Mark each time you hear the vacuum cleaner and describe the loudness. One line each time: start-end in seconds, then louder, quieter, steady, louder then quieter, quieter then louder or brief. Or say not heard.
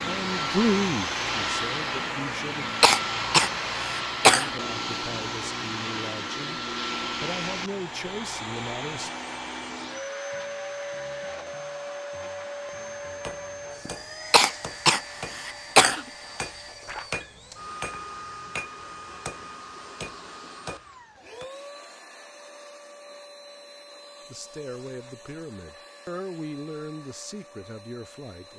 0.0-28.5 quieter.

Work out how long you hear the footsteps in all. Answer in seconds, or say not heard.
not heard.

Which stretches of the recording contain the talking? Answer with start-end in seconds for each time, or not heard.
0.0-2.8, 4.2-9.2, 24.2-28.5.